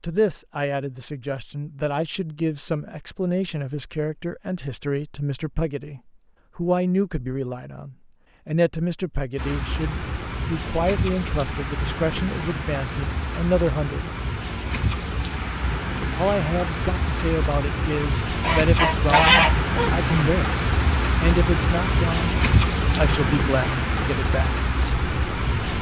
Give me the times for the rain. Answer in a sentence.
You can hear the rain from 9.3 to 25.7 s.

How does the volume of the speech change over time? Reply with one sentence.
The volume of the speech stays about the same.